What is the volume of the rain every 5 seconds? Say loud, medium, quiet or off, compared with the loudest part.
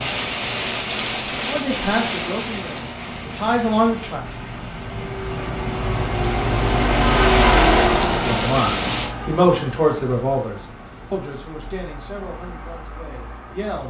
loud, loud, off.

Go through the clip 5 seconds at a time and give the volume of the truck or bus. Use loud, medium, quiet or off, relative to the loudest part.
quiet, loud, quiet.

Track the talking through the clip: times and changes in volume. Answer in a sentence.
You can hear the talking briefly from 1.4 to 4.2 s; and from 8.2 to 13.8 s, getting quieter.